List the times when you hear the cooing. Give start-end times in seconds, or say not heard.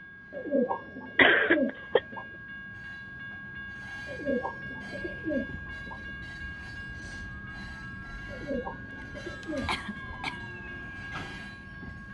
0.3-2.2, 4.0-6.1, 8.2-10.2.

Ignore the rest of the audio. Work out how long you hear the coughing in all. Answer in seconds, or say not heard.
2 s.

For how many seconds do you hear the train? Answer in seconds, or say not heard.
12 s.